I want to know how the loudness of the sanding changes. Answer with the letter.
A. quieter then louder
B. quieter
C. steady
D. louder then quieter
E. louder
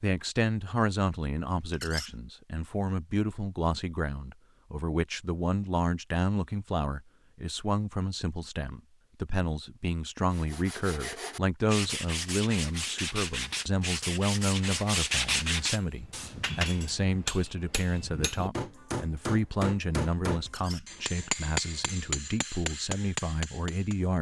E.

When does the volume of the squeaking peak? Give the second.
2 s.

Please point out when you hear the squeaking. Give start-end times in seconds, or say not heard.
1.7-2.1, 20.4-20.9.